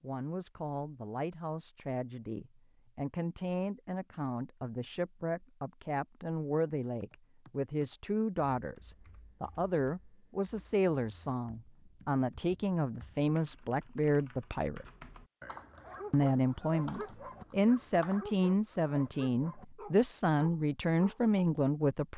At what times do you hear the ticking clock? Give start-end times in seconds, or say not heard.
not heard.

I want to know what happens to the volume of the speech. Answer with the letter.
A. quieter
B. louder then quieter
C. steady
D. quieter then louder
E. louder
E.